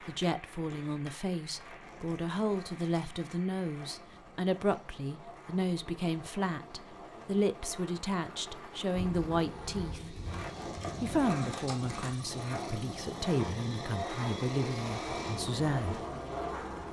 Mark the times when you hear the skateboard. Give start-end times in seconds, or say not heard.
0.0-16.8.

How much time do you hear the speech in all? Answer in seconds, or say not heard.
15 s.